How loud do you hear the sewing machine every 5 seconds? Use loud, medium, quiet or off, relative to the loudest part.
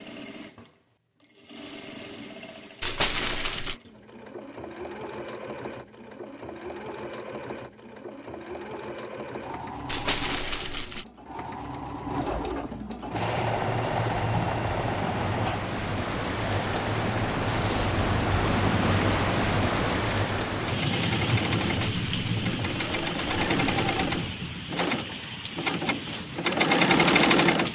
quiet, quiet, medium, medium, medium, loud.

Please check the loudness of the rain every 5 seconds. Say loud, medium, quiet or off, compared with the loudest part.
off, off, medium, loud, loud, medium.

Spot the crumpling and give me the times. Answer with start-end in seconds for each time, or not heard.
2.8-3.8, 9.8-11.1, 21.6-24.4.